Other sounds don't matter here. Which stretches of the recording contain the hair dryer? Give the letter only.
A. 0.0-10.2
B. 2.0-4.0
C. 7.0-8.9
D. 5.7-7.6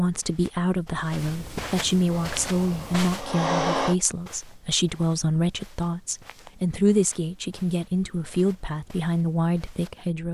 B.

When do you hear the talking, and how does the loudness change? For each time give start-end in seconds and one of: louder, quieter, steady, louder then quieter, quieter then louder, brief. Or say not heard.
0.0-10.2 steady.